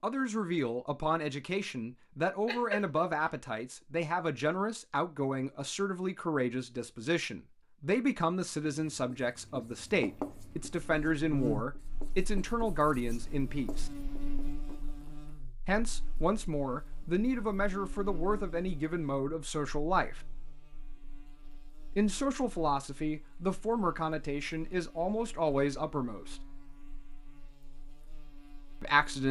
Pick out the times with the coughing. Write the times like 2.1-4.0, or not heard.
2.5-3.2.